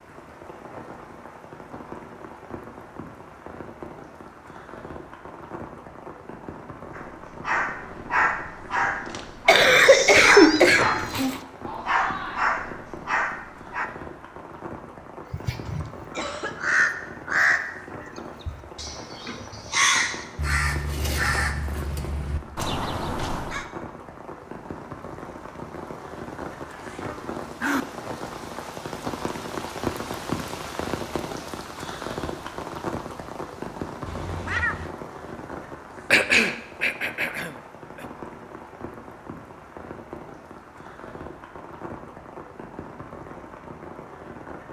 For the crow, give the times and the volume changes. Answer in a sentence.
The crow can be heard from 15.3 to 23.6 s, getting quieter.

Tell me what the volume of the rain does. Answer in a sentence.
The volume of the rain goes up, then down.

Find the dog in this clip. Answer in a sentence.
You can hear the dog from 6.9 to 13.9 s.